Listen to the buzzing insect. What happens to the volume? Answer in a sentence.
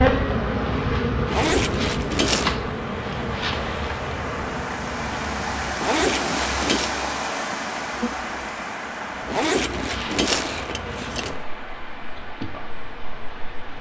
The loudness of the buzzing insect goes down.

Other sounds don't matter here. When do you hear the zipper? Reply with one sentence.
The zipper can be heard from 1.2 to 2.5 s, from 5.8 to 6.9 s and from 9.2 to 11.3 s.